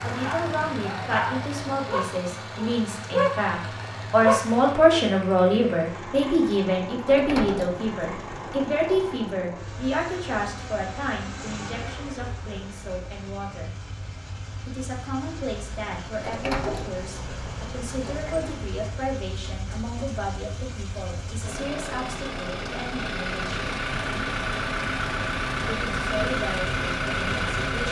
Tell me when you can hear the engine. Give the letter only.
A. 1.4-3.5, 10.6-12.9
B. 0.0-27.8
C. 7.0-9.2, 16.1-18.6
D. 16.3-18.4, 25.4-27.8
B.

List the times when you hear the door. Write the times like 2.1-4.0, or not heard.
7.0-9.2, 16.1-18.6.